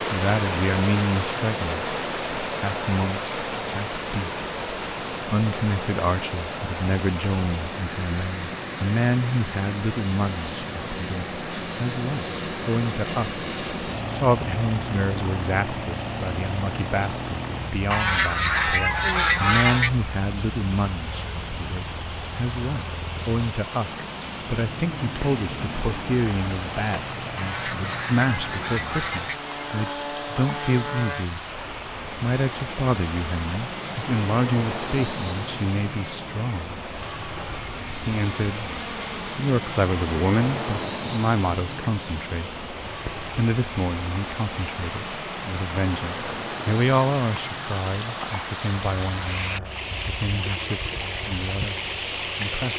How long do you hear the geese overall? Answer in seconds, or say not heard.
4 s.